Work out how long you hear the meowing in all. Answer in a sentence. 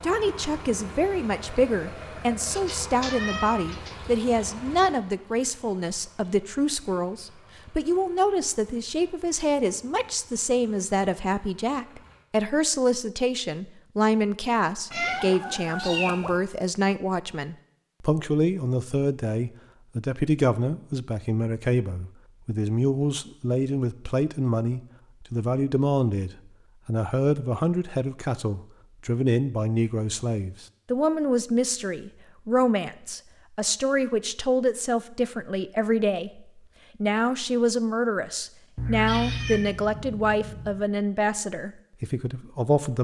The meowing can be heard for 5 seconds in total.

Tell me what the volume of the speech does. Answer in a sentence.
The loudness of the speech stays about the same.